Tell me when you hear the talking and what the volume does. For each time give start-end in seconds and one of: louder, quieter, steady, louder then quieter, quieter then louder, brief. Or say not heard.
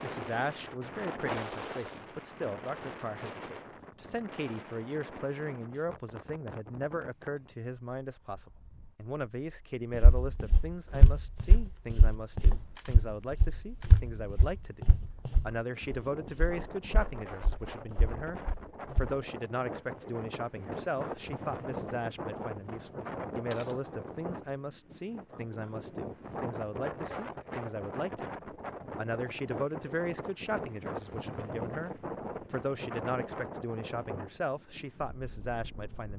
0.0-36.1 steady.